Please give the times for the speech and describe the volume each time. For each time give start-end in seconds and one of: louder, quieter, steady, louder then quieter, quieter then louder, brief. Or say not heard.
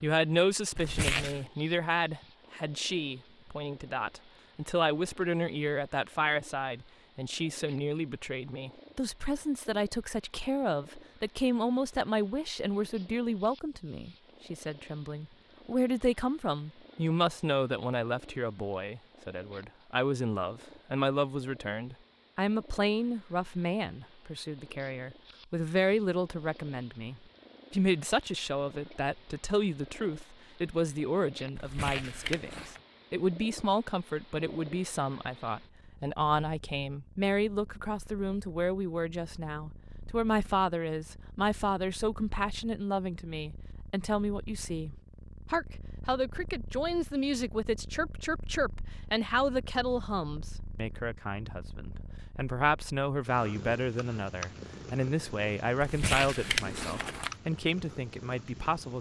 0.0-58.9 steady.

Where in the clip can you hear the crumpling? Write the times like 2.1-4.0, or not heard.
0.8-1.4, 31.6-32.8, 55.8-57.3.